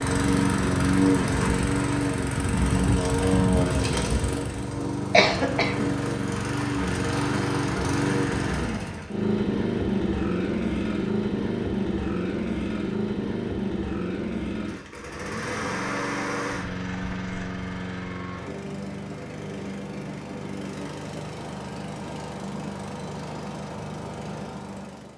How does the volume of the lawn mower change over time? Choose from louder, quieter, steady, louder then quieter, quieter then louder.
quieter.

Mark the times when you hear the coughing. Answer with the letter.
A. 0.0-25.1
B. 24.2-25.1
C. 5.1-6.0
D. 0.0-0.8
C.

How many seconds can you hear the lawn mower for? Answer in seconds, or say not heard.
25 s.